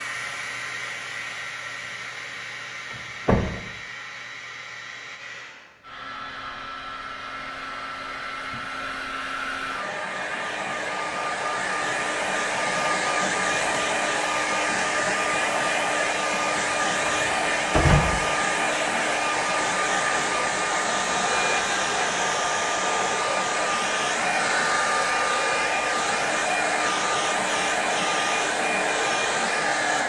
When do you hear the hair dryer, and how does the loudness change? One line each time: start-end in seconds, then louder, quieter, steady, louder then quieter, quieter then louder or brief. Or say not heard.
0.0-30.0 louder.